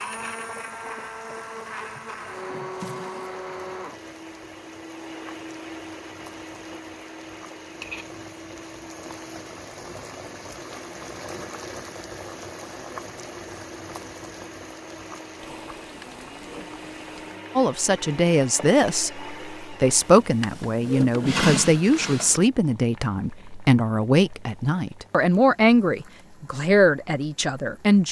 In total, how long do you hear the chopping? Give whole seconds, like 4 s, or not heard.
not heard.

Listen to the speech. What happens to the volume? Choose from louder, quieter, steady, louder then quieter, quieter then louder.
steady.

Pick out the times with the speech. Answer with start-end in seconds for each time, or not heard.
17.6-28.0.